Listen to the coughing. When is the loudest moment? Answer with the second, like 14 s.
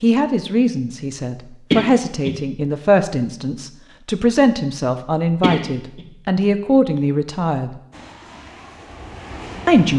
2 s.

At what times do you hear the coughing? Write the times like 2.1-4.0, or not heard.
1.7-2.4, 5.4-6.0.